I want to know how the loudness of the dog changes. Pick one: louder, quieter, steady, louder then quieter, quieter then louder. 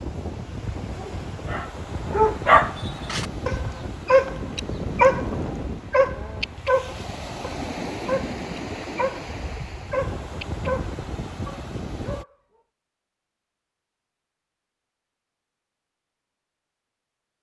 quieter.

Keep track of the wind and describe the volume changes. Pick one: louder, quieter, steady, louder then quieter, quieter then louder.
steady.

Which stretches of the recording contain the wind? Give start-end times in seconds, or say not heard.
0.0-12.2.